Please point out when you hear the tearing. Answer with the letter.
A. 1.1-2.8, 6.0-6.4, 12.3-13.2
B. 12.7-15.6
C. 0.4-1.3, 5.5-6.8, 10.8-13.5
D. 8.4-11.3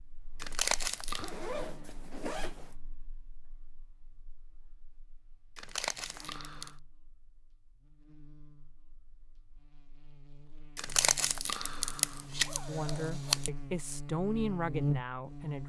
C.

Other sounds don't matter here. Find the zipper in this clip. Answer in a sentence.
You can hear the zipper from 1.1 to 2.8 s, from 6.0 to 6.4 s and from 12.3 to 13.2 s.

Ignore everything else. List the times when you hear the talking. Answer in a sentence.
The talking can be heard from 12.7 to 15.6 s.